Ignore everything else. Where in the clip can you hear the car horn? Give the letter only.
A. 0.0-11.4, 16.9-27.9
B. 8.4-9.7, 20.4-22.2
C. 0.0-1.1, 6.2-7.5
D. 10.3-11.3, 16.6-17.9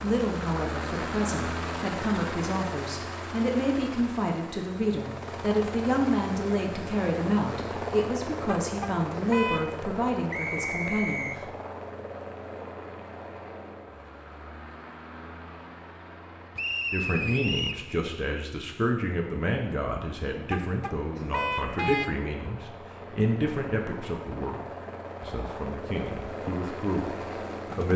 B.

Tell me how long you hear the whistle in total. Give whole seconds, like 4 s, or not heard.
2 s.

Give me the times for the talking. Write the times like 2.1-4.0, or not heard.
0.0-11.4, 16.9-27.9.